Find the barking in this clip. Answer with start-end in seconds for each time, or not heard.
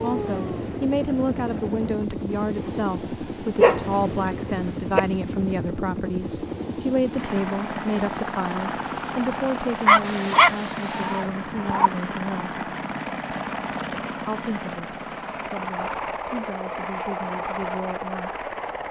3.5-4.3, 9.8-11.9.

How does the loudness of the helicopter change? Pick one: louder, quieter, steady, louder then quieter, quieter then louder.
steady.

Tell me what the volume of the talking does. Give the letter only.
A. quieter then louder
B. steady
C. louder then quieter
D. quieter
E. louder
D.